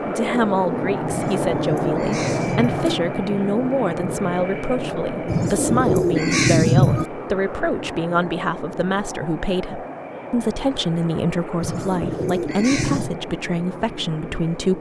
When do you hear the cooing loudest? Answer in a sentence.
The volume of the cooing peaks at 7 seconds.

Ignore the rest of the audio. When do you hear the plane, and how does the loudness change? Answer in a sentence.
The plane can be heard from 0.0 to 14.7 s, getting quieter.